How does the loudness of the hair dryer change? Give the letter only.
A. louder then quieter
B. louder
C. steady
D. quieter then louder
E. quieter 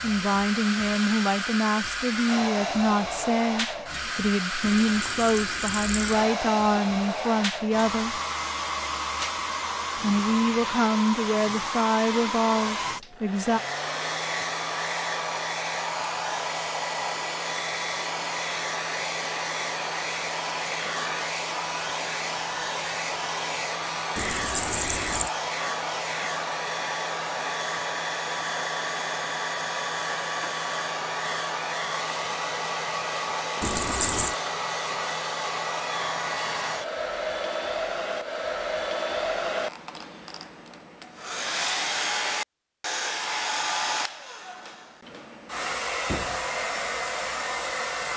C.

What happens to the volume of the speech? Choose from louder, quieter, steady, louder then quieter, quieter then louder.
steady.